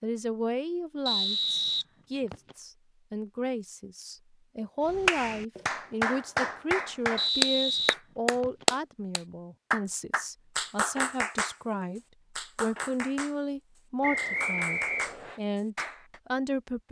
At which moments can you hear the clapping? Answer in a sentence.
The clapping can be heard from 4.8 to 11.6 s, from 12.3 to 13.3 s and from 14.2 to 16.2 s.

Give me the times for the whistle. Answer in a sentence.
The whistle can be heard from 1.1 to 2.5 s, from 7.2 to 8.7 s and from 14.0 to 15.4 s.